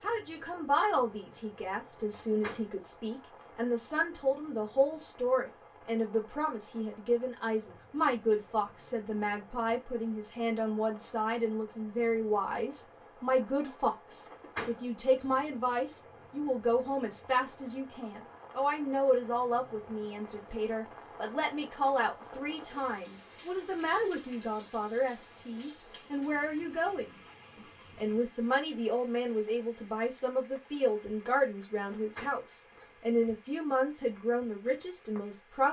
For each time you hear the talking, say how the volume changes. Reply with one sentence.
You can hear the talking from 0.0 to 35.6 s, at a steady volume.